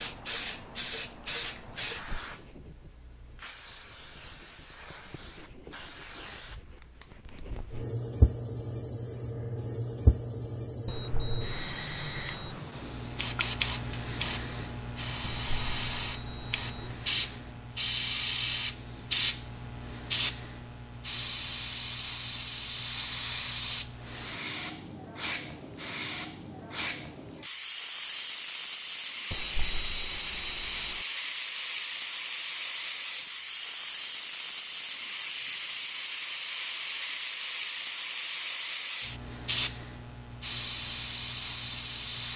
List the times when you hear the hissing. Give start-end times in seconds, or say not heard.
0.0-42.3.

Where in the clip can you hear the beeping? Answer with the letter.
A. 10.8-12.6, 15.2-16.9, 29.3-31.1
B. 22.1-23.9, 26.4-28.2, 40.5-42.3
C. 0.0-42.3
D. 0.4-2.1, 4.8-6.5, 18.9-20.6
A.